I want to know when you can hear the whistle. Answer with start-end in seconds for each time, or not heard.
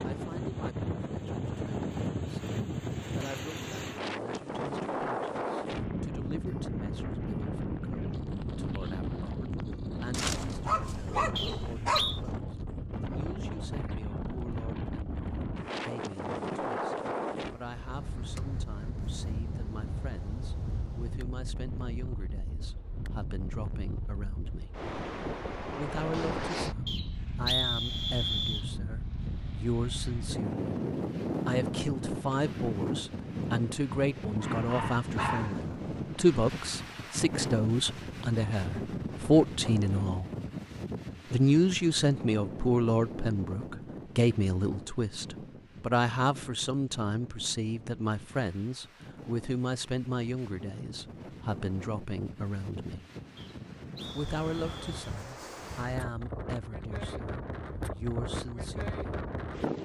11.3-12.2, 26.9-28.6, 53.4-54.9.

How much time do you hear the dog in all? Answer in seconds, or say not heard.
4 s.